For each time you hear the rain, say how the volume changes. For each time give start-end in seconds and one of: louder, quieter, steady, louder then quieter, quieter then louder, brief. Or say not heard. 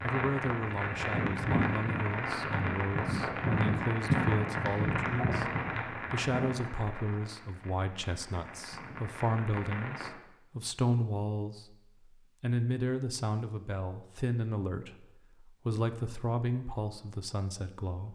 0.0-10.1 quieter.